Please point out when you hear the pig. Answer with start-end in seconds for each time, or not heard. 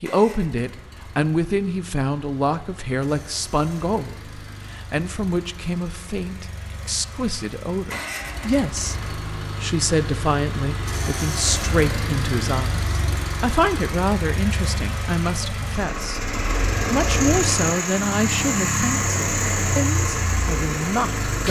not heard.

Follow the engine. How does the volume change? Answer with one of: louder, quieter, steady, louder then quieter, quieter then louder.
louder.